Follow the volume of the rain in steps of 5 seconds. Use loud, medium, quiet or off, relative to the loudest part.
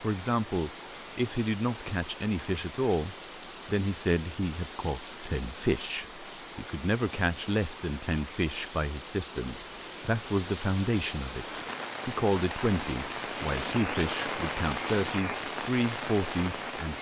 medium, medium, loud, loud.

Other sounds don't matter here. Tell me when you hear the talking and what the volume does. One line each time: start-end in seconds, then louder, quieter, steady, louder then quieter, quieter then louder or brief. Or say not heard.
0.0-16.9 steady.